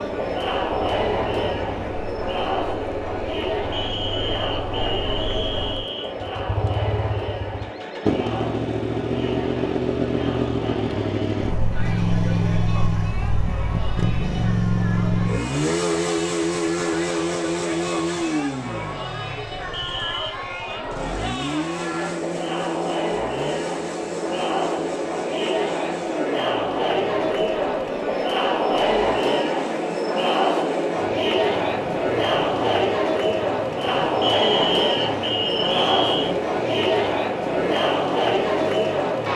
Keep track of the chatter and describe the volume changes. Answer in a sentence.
The loudness of the chatter goes down, then up.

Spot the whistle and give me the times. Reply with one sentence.
You can hear the whistle from 3.7 to 6.2 s, from 19.7 to 20.4 s and from 34.2 to 36.4 s.